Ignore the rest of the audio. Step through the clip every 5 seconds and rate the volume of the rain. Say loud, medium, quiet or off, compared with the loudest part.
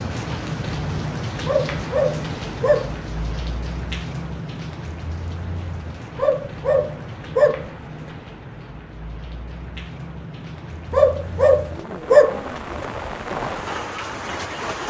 loud, medium, loud.